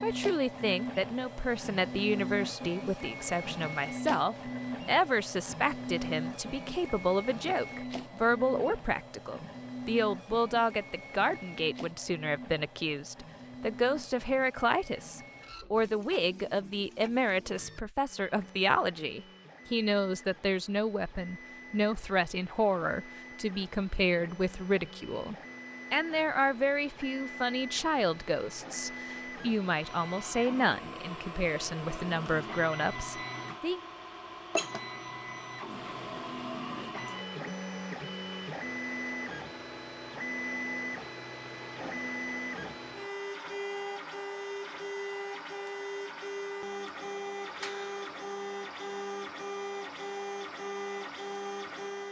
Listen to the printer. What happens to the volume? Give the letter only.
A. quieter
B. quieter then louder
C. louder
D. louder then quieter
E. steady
B.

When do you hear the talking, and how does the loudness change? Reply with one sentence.
The talking can be heard from 0.0 to 33.8 s, at a steady volume.